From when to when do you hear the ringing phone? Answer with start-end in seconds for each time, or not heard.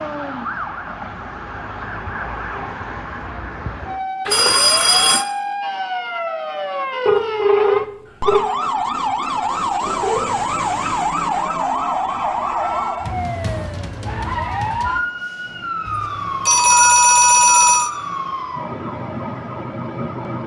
4.2-5.2, 7.0-8.4, 15.8-17.9.